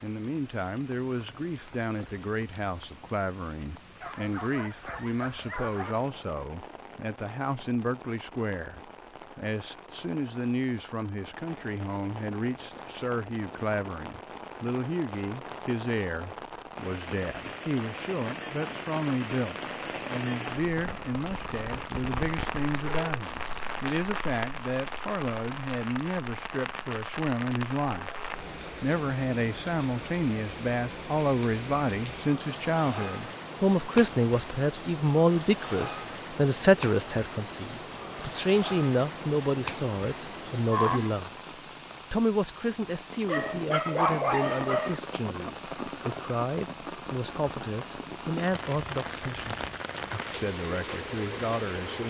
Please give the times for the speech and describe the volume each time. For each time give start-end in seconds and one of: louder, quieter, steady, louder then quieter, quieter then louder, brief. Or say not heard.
0.0-41.3 louder
42.1-49.6 steady
50.3-52.0 brief.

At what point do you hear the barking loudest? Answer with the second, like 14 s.
44 s.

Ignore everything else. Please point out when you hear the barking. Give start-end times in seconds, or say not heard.
4.0-6.0, 22.7-23.8, 43.2-45.0.